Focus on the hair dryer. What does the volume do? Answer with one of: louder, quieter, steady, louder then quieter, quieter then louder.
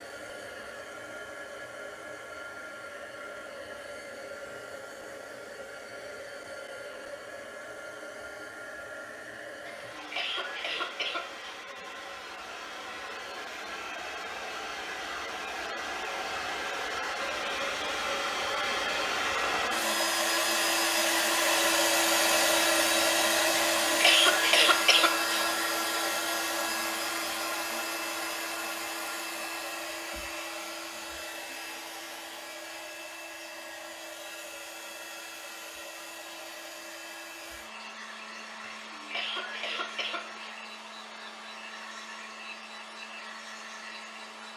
louder then quieter.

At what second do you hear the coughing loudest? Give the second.
24 s.